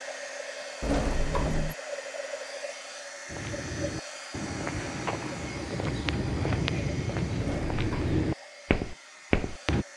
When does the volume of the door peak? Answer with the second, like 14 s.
1 s.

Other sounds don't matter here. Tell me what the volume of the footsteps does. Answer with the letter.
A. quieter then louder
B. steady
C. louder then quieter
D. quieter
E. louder
E.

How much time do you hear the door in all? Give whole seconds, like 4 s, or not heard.
2 s.